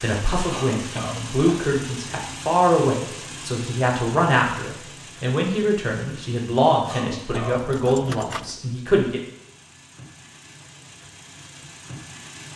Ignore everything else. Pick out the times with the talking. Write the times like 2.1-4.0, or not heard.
0.0-9.2.